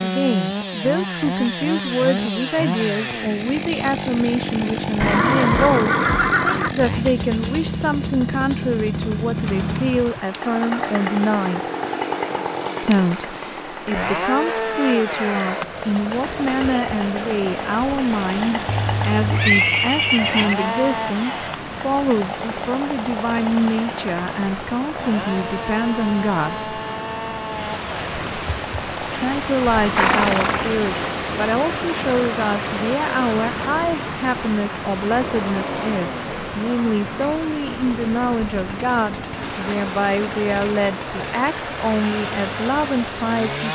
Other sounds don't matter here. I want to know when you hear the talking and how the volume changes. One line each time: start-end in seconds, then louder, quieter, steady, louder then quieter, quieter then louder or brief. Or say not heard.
0.0-11.6 steady
12.8-26.7 steady
29.1-43.6 steady.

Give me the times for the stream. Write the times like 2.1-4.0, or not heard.
9.4-43.4.